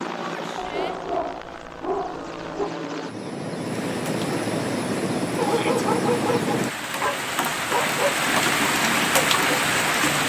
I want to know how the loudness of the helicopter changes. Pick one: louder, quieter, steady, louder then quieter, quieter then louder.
louder.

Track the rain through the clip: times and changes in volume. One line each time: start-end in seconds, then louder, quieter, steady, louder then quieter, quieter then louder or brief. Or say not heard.
3.5-10.2 louder.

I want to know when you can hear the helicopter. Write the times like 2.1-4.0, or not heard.
0.0-6.7.